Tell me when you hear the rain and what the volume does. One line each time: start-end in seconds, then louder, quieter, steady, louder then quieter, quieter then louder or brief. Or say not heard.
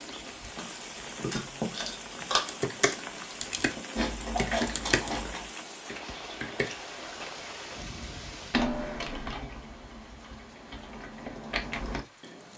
0.0-12.5 quieter.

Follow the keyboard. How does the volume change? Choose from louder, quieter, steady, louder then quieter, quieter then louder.
quieter then louder.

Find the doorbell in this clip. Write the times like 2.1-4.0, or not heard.
8.6-9.4.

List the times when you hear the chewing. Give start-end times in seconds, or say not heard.
0.0-5.5.